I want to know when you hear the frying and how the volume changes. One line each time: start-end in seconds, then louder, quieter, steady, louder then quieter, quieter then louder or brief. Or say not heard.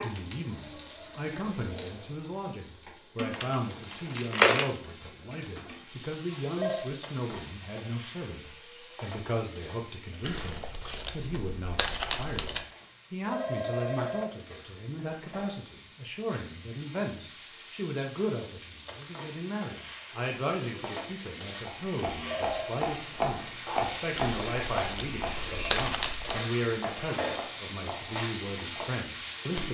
0.0-29.6 quieter then louder.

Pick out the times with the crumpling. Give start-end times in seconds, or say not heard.
3.3-4.7, 10.2-12.7, 24.1-26.4.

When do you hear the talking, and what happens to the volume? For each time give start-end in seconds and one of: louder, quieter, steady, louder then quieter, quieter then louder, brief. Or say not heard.
0.0-29.6 steady.